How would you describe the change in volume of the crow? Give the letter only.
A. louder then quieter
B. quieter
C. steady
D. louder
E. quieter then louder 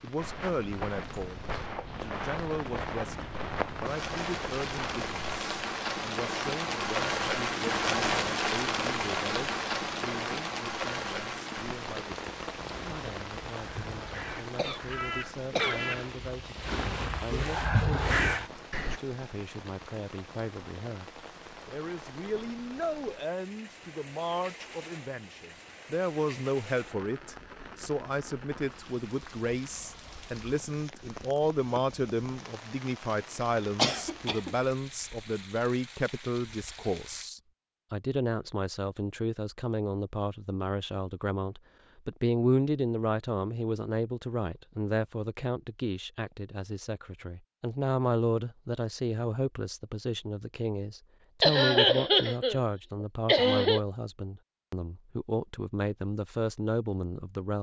D.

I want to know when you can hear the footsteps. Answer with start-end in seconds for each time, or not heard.
0.1-5.2.